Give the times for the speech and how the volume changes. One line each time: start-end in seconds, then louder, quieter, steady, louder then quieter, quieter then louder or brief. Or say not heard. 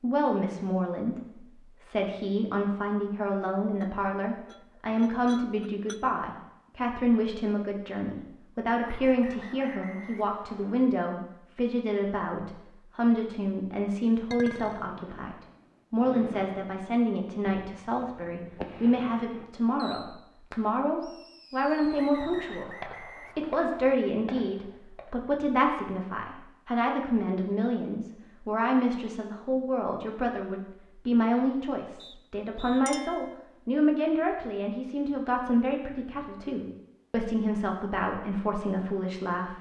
0.0-39.5 steady.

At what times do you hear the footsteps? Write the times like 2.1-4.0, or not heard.
not heard.